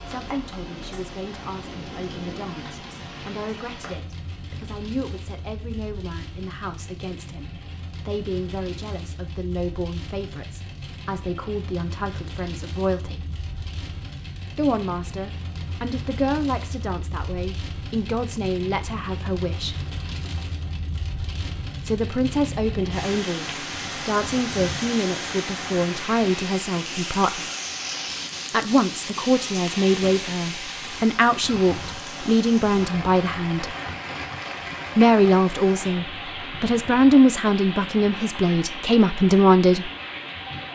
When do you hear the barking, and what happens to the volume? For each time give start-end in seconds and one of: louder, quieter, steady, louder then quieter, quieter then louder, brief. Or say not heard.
not heard.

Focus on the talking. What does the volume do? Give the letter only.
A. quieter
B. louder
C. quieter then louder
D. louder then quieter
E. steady
B.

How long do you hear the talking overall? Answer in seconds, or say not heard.
34 s.